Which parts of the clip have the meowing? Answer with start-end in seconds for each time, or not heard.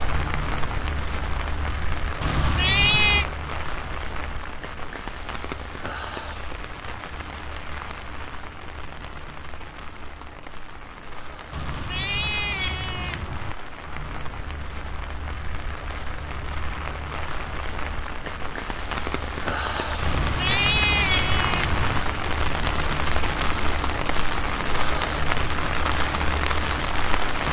2.2-3.2, 11.5-13.6, 20.0-22.1.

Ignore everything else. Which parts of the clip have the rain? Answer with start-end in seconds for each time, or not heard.
0.0-27.4.